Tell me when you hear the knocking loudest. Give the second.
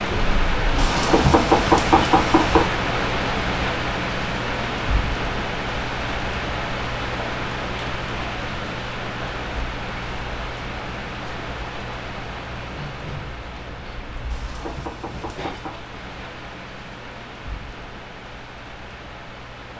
2 s.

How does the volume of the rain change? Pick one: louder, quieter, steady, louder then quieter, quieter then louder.
quieter.